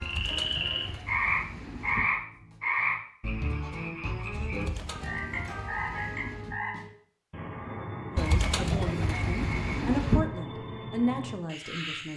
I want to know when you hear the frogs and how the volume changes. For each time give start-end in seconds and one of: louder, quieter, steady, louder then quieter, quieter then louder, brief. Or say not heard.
0.0-12.1 quieter.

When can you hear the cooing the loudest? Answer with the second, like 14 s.
10 s.